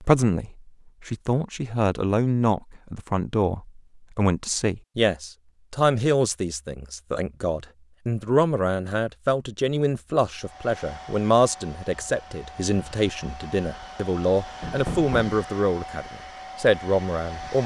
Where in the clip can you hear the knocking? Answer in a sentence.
The knocking can be heard from 14.6 to 15.3 s.